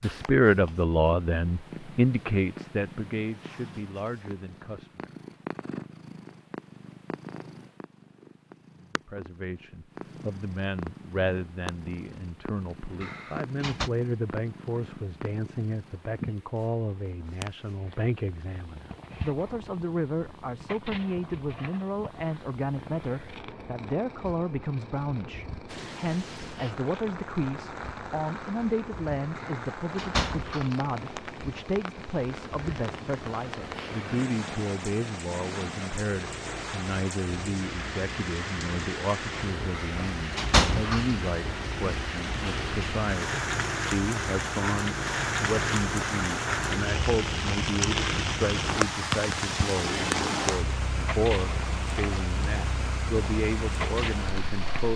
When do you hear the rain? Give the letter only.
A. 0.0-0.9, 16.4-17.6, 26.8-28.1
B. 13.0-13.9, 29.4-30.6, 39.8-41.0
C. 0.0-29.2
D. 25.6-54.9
D.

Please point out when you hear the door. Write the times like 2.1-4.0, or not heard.
13.0-13.9, 29.4-30.6, 39.8-41.0.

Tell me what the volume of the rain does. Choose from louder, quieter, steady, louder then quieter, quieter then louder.
louder.